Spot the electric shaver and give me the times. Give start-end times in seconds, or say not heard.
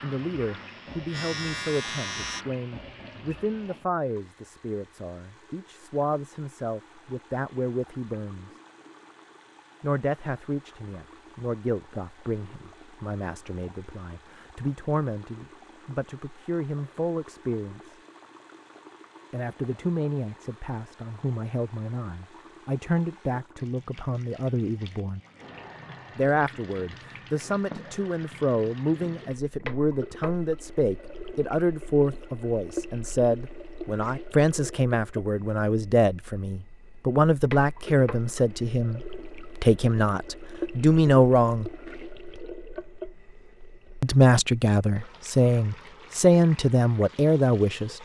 0.0-2.5.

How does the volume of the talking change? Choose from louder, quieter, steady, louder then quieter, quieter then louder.
louder.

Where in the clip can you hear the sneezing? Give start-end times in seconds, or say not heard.
not heard.